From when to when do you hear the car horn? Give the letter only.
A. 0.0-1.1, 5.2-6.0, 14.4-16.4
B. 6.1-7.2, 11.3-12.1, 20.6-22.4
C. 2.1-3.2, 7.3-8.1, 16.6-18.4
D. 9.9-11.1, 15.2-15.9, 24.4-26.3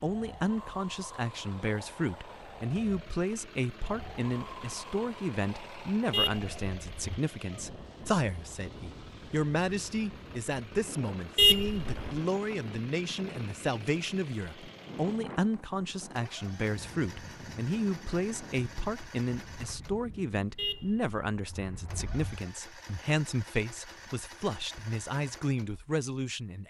B.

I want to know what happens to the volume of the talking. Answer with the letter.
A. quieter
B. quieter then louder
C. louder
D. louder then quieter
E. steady
E.